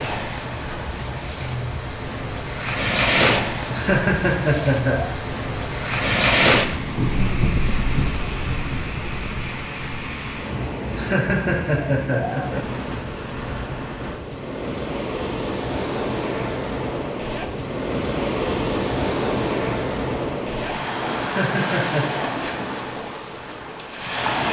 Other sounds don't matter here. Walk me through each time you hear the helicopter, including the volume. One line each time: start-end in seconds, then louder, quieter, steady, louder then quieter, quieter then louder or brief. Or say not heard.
not heard.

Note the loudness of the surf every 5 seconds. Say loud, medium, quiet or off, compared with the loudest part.
loud, loud, medium, loud, loud.